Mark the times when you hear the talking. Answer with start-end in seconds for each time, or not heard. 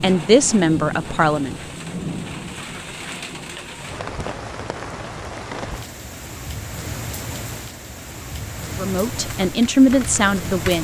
0.0-1.6, 8.8-10.7.